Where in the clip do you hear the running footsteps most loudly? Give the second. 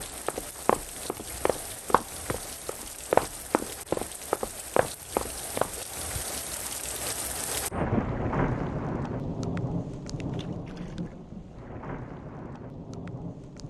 3 s.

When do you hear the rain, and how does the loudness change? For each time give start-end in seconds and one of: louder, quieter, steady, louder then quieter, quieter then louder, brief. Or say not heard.
0.0-13.6 louder then quieter.